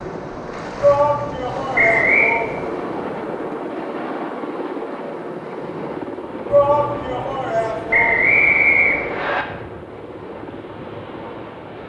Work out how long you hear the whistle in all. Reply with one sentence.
You can hear the whistle for 2 seconds altogether.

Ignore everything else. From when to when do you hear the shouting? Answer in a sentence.
You can hear the shouting from 0.8 to 2.8 s and from 6.5 to 8.4 s.